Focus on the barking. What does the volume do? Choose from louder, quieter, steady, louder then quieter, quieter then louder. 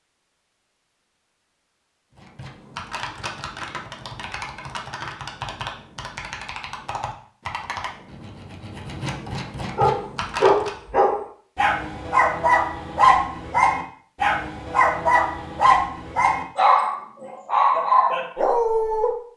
steady.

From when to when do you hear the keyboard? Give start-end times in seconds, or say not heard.
2.1-10.8.